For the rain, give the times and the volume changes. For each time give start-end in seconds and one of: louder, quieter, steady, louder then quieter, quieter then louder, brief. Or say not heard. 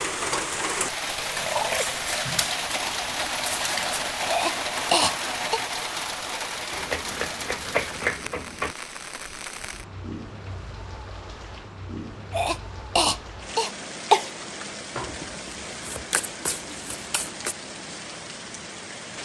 0.0-19.1 quieter.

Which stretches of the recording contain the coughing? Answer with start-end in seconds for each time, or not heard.
4.2-5.6, 12.3-14.3.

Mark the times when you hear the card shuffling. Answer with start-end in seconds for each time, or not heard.
2.0-4.2, 6.7-8.8, 14.9-17.6.